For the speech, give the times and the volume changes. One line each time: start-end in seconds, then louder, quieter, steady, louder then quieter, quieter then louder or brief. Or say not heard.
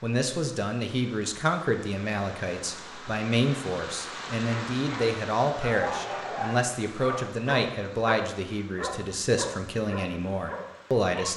0.0-11.3 steady.